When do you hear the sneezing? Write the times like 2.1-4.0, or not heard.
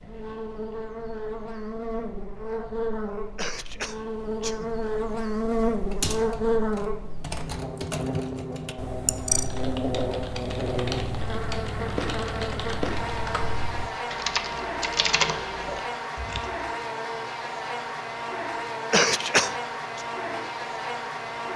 3.4-4.7, 18.9-20.0.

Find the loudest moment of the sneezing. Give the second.
19 s.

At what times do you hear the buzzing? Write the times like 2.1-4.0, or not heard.
0.0-21.5.